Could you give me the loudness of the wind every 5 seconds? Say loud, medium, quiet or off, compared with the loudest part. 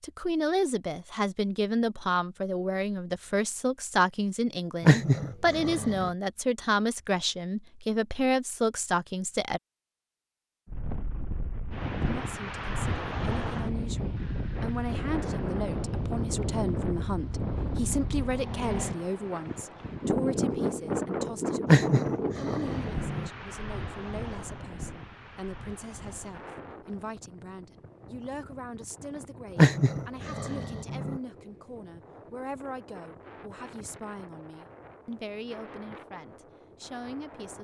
off, off, loud, loud, loud, quiet, quiet, quiet.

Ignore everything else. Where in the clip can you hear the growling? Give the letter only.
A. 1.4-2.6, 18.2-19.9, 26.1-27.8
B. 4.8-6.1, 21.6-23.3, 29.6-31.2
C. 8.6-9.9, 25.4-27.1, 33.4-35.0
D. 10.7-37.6
B.